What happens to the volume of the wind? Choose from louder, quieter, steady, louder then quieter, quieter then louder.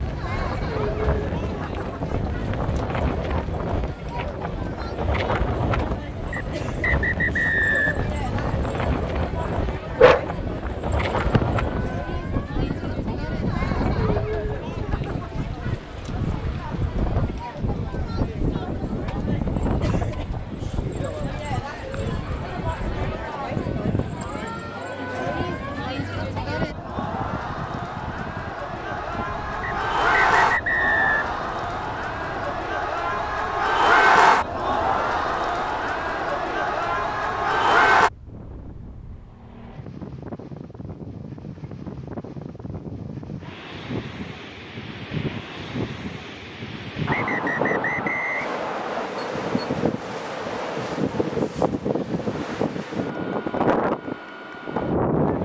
quieter then louder.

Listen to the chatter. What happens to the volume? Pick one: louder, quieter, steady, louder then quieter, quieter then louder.
louder.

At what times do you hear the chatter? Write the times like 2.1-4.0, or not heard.
0.0-38.1.